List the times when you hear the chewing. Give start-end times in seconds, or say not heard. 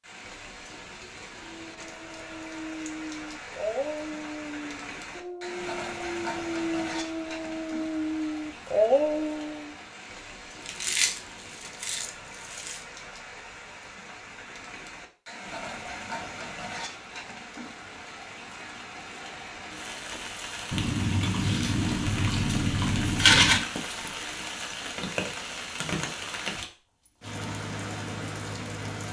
10.7-12.8, 20.7-23.6.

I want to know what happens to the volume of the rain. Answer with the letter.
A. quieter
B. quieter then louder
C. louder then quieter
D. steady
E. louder
E.